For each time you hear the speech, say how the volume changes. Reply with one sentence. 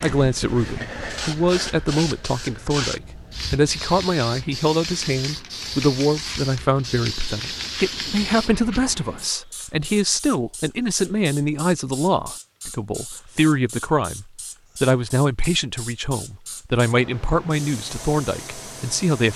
The speech can be heard from 0.0 to 19.3 s, at a steady volume.